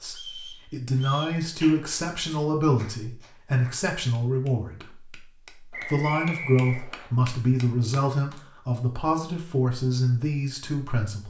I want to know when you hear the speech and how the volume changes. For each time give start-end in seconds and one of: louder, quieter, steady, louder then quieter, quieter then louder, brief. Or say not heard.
0.0-11.2 steady.